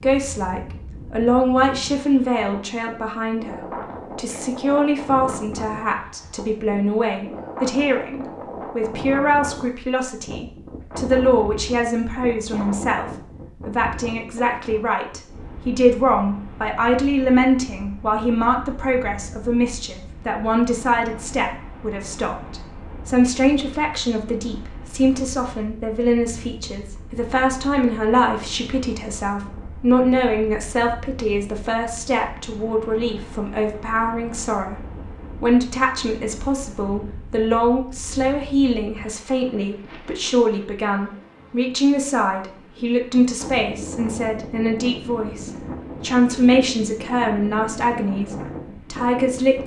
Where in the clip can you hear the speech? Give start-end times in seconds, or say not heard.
0.0-49.6.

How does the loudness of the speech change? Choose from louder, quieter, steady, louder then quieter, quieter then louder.
steady.